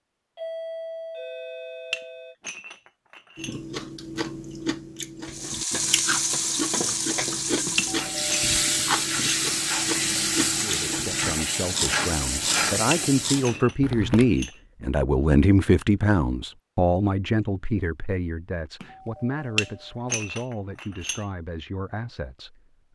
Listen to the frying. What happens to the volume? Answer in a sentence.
The volume of the frying stays about the same.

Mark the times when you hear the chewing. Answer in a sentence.
You can hear the chewing from 3.4 to 14.3 s.